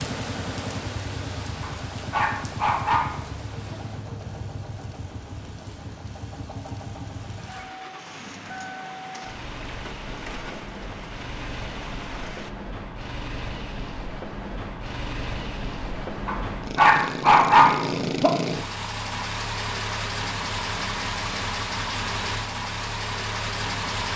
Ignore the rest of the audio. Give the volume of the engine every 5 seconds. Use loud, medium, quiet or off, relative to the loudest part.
medium, medium, medium, loud, loud.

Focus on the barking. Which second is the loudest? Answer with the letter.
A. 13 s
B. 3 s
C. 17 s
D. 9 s
C.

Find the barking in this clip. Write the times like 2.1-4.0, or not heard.
1.6-3.1, 16.2-18.3.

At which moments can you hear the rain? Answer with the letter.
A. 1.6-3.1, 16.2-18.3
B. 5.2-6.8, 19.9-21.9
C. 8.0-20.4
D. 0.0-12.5
D.